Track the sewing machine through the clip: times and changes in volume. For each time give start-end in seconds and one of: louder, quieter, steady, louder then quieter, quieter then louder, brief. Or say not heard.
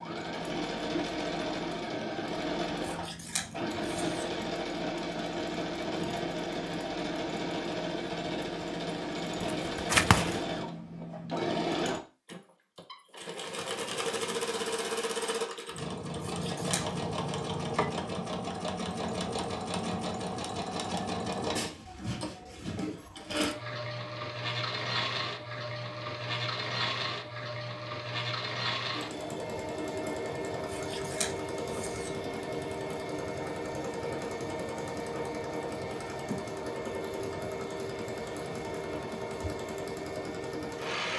0.0-41.1 steady.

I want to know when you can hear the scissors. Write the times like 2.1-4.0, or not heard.
2.8-4.3, 16.2-16.9, 30.6-32.2.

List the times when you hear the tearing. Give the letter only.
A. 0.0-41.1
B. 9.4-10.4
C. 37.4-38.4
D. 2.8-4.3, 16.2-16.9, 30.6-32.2
B.